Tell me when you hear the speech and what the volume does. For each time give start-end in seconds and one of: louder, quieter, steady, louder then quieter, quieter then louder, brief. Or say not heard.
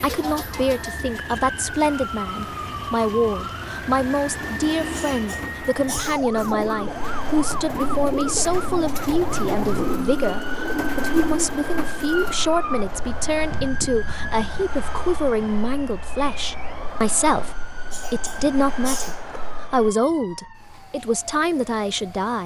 0.0-22.4 steady.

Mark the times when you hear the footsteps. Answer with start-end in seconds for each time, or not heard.
not heard.